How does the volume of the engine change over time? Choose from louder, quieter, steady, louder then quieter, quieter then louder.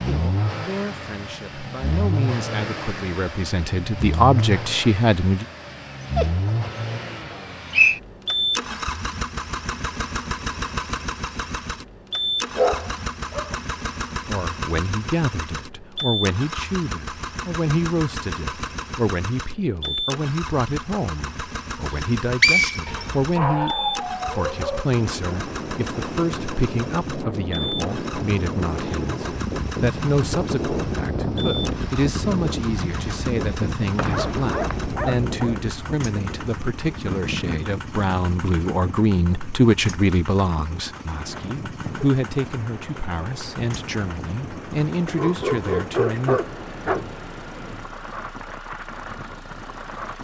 quieter.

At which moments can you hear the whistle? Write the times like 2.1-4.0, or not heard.
7.3-8.0, 21.9-23.1, 34.0-34.8.